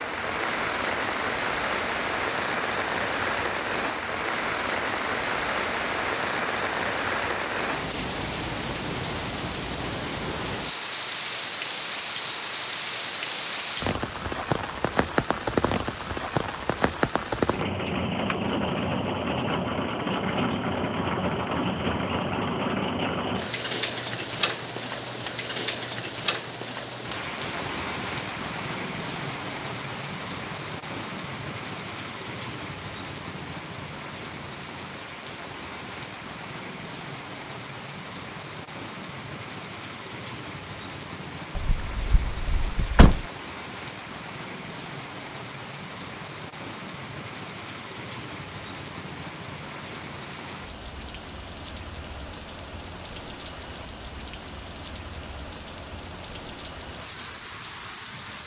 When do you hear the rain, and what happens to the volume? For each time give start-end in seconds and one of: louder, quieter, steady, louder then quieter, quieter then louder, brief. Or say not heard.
0.0-58.4 quieter.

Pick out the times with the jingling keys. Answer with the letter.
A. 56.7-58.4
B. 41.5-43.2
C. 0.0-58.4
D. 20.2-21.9
B.